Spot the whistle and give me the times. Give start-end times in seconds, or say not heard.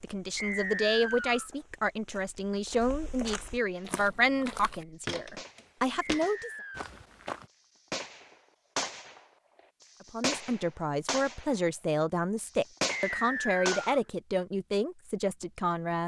0.3-1.5, 6.0-6.9, 13.0-13.8.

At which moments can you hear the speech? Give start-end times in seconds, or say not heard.
0.0-6.5, 10.0-16.0.